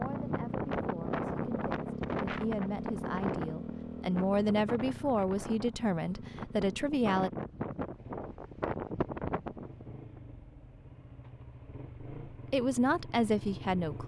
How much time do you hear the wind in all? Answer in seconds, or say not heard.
10 s.